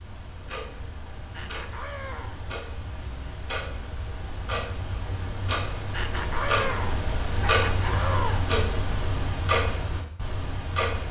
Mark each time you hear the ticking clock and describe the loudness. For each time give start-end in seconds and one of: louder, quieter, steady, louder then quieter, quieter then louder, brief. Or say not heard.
0.0-11.0 louder.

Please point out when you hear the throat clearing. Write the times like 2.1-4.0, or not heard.
1.3-2.4, 5.9-8.4.